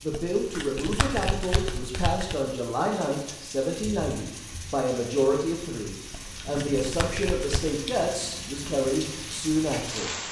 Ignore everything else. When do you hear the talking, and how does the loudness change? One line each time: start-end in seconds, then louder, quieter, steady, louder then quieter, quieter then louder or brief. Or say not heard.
0.0-10.2 steady.